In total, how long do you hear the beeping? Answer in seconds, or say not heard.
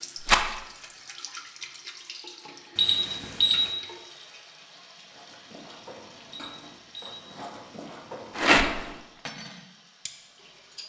2 s.